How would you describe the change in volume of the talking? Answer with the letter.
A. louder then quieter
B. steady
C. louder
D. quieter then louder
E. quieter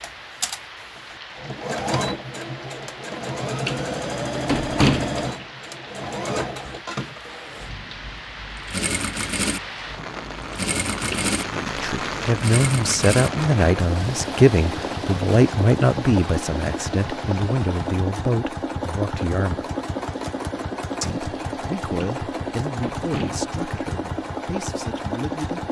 E.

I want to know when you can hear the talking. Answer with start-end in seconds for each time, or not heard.
11.4-19.6, 21.0-25.6.